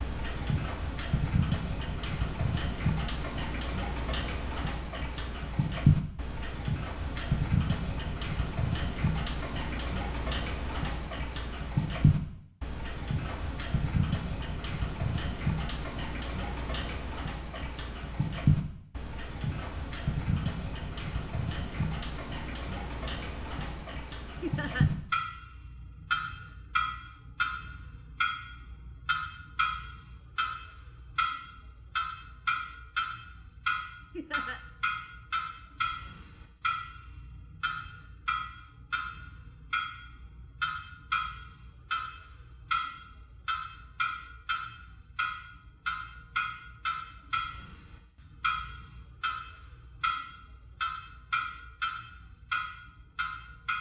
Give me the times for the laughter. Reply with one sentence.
You can hear the laughter from 24.4 to 24.9 s and from 34.1 to 34.6 s.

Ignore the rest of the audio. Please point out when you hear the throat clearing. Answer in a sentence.
You can't hear the throat clearing here.